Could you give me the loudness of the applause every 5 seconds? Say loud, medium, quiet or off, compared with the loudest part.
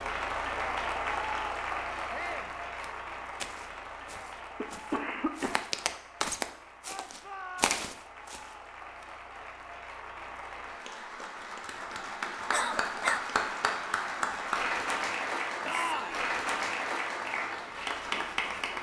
loud, quiet, loud, loud.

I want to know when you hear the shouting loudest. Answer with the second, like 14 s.
16 s.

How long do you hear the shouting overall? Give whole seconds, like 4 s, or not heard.
2 s.